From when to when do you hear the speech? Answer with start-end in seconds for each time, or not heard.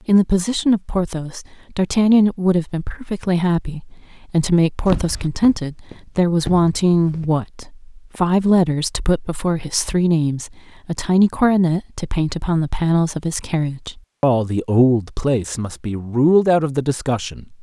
0.1-17.5.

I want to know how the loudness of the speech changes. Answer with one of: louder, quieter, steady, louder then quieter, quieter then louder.
steady.